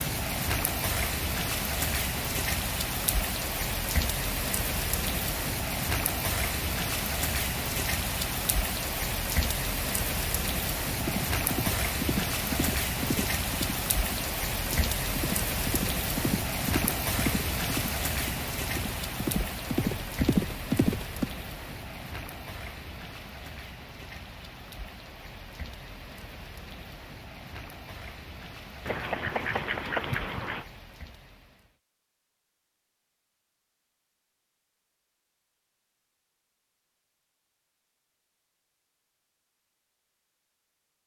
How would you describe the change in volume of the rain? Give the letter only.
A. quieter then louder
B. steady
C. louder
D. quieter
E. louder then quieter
D.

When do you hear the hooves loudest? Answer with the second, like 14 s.
20 s.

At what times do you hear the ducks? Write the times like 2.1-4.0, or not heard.
28.9-30.6.